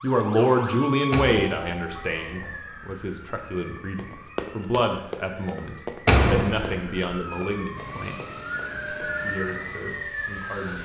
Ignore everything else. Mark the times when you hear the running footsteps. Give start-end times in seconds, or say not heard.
4.0-9.2.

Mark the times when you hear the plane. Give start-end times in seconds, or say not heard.
7.8-10.8.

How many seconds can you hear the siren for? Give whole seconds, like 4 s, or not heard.
11 s.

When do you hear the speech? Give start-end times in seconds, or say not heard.
0.0-8.4, 9.2-10.8.